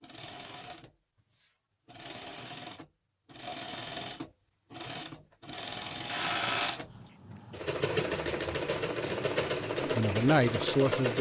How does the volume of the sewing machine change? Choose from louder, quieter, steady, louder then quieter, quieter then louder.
louder.